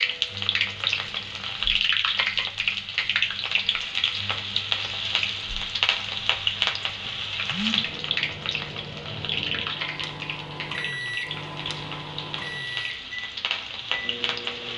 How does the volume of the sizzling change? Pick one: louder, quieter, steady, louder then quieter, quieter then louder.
quieter.